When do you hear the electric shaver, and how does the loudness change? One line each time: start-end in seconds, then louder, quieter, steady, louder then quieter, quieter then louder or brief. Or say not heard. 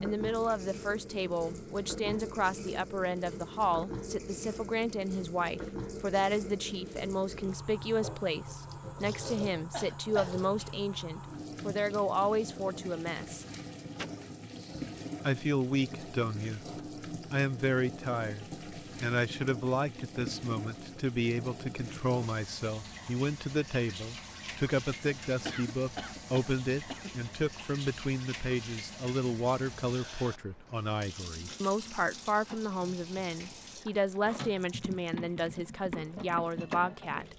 not heard.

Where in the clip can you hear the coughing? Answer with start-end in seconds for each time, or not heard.
9.7-10.3, 13.9-14.8, 25.4-27.3.